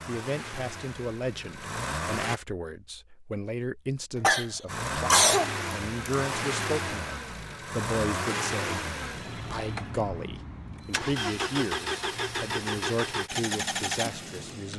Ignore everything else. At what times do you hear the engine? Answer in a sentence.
The engine can be heard from 0.0 to 2.4 s and from 4.7 to 14.7 s.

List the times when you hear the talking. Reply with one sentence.
The talking can be heard from 0.1 to 14.7 s.